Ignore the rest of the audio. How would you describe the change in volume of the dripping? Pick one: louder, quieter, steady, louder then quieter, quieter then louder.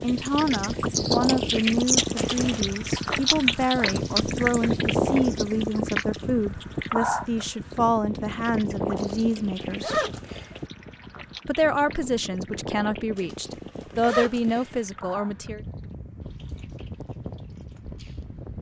quieter.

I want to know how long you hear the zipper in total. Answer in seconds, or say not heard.
4 s.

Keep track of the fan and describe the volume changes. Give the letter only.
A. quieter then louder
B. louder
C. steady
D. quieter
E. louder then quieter
D.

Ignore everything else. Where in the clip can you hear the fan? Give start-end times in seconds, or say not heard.
0.0-18.5.